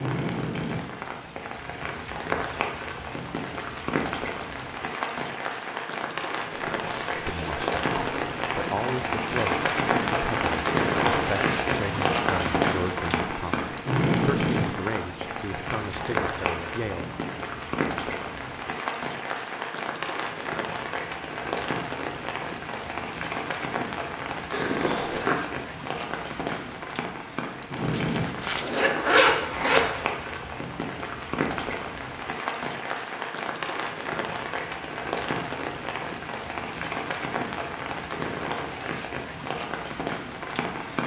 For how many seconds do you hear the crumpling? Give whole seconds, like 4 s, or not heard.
3 s.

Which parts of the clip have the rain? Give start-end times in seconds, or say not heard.
0.0-41.0.